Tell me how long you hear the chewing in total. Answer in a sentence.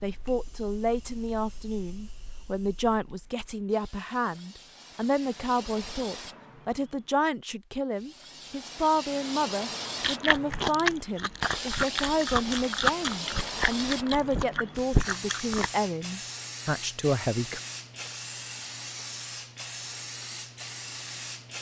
You can hear the chewing for 6 seconds altogether.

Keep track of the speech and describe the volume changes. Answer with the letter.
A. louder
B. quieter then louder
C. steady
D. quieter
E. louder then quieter
C.